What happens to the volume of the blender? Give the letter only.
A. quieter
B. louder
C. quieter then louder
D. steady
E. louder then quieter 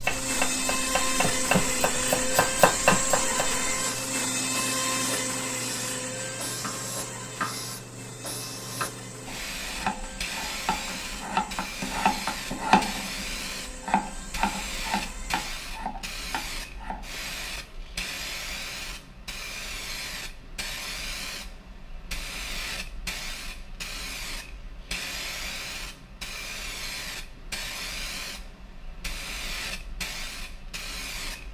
A.